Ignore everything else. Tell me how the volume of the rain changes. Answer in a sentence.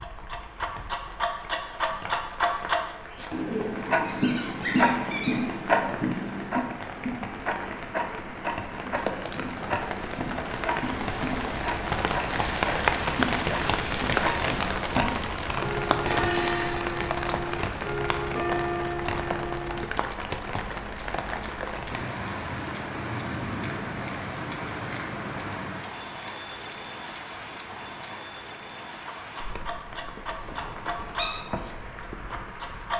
The loudness of the rain goes up, then down.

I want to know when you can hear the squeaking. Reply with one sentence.
The squeaking can be heard from 4.0 to 5.5 s, from 16.0 to 16.9 s and from 30.4 to 31.2 s.